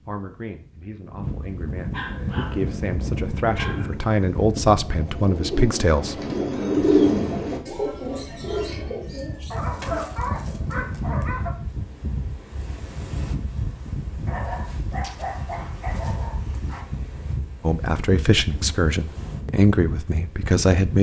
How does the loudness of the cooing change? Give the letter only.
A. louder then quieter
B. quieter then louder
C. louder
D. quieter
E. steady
A.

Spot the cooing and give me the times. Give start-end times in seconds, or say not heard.
1.9-10.8.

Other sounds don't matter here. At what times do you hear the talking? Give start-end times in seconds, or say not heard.
0.0-6.2, 17.6-20.9.